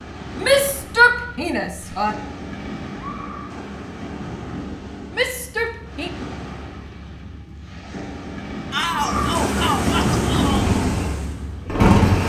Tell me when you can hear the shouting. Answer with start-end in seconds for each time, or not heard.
0.3-2.1, 5.1-6.1, 8.7-10.7.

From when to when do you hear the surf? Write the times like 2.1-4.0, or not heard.
0.0-12.2.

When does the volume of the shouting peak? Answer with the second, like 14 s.
1 s.